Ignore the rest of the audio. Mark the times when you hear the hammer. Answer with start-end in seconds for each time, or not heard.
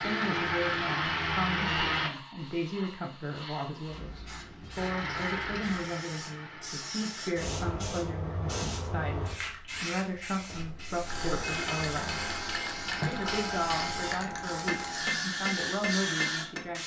10.6-16.6.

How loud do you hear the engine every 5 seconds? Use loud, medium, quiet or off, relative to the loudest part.
loud, medium, off, off.